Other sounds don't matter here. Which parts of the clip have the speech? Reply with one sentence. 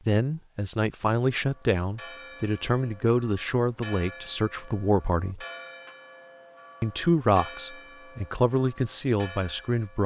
You can hear the speech from 0.1 to 5.5 s and from 6.8 to 10.0 s.